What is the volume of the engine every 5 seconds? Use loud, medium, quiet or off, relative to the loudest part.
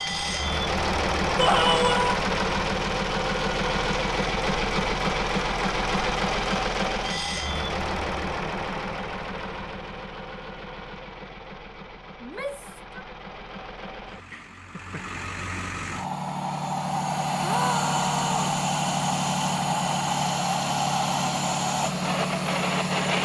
loud, loud, quiet, loud, loud.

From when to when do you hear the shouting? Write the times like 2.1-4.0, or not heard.
1.4-2.2, 12.2-13.0, 17.4-18.6.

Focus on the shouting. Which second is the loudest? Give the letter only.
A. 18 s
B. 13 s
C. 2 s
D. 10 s
C.